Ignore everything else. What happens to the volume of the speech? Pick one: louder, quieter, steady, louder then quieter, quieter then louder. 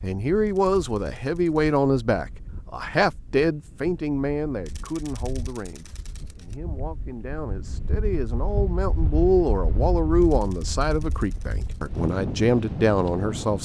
quieter then louder.